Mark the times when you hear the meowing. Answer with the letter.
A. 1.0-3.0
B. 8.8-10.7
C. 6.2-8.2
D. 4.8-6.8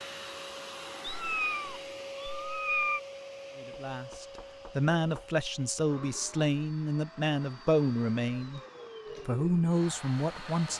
A.